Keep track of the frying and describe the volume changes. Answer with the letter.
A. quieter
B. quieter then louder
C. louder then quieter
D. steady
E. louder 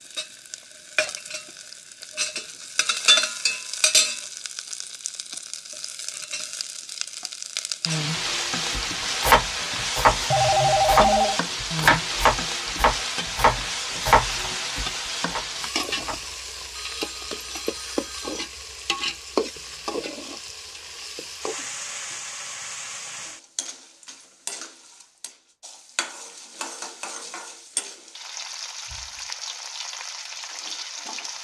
A.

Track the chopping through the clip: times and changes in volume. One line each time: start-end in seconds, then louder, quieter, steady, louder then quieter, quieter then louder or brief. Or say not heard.
8.7-16.9 quieter.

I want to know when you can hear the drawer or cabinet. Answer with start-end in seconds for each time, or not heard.
not heard.